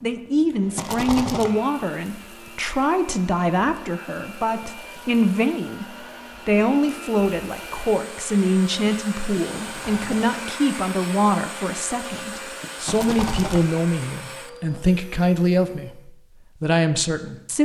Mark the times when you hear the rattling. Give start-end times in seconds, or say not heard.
0.8-1.5, 9.5-10.2, 12.8-13.6.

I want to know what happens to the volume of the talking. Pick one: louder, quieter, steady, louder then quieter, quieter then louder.
steady.